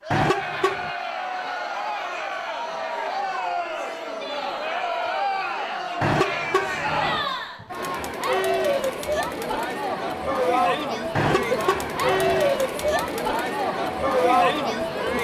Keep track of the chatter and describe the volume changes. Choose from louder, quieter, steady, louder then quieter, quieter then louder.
louder.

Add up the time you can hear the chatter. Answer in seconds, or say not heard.
15 s.